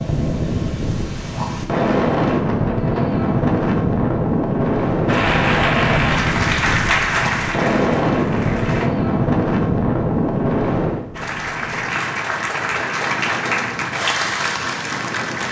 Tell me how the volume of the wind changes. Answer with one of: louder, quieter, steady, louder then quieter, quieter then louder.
quieter.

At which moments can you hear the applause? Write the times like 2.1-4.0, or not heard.
5.0-8.9, 11.2-15.4.